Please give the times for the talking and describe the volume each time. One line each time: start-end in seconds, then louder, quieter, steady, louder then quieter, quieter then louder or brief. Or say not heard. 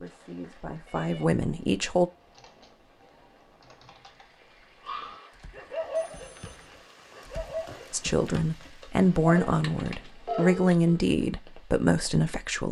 0.0-2.1 brief
7.9-12.6 steady.